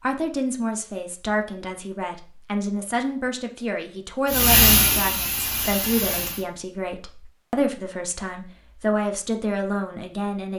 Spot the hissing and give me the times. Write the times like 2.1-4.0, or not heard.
4.2-6.5.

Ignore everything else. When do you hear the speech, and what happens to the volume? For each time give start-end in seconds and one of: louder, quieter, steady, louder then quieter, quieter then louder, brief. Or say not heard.
0.0-10.5 steady.